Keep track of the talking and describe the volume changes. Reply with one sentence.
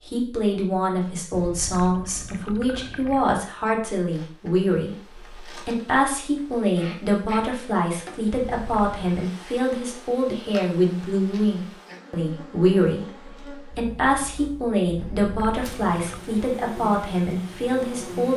The volume of the talking stays about the same.